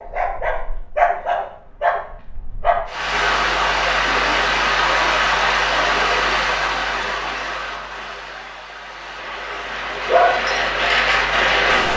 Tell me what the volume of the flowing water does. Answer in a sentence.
The volume of the flowing water goes down, then up.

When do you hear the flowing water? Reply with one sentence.
You can hear the flowing water from 2.9 to 11.9 s.